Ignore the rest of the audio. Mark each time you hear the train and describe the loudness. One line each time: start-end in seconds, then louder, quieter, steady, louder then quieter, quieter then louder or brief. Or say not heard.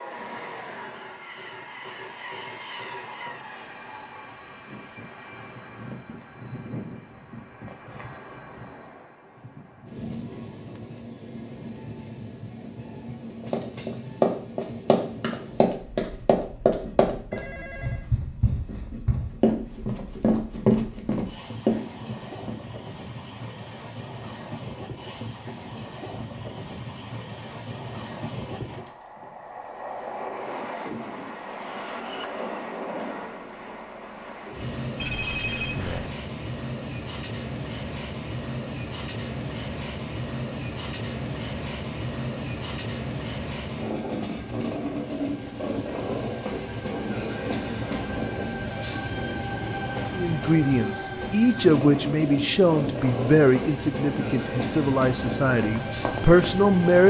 0.0-57.0 louder.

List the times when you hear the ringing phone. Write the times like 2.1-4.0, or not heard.
17.3-18.1, 35.0-36.1.